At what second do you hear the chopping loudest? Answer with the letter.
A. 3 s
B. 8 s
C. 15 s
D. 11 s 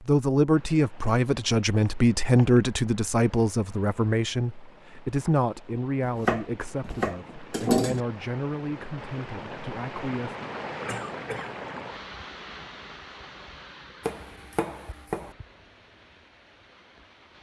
B.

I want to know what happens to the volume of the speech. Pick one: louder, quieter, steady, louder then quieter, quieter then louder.
quieter.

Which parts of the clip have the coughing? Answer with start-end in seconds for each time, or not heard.
10.8-11.6.